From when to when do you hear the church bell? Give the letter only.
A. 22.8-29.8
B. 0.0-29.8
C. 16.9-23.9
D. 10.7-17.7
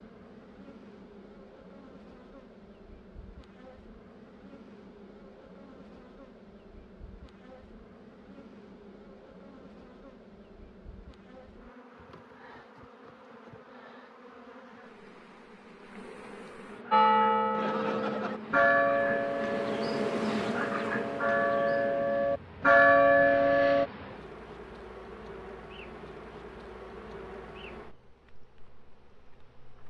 C.